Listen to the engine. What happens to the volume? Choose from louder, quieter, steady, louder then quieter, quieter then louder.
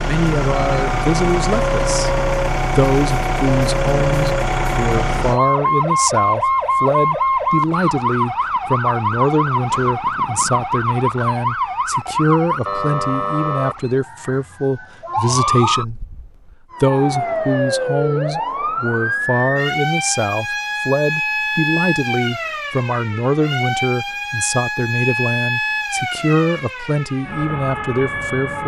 steady.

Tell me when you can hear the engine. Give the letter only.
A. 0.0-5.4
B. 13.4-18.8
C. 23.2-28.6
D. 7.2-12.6
A.